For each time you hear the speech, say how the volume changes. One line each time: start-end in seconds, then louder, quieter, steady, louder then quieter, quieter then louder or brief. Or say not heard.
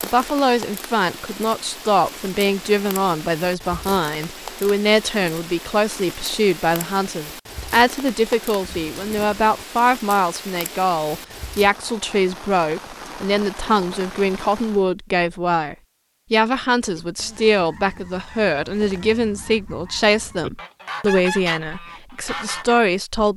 0.0-23.3 steady.